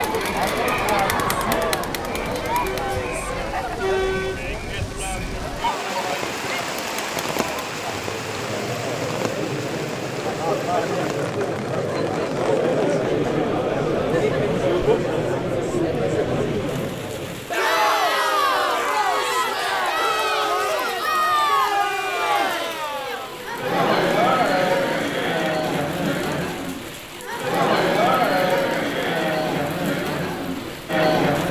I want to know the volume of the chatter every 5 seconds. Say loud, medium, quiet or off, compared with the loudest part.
loud, medium, loud, loud, loud, loud, loud.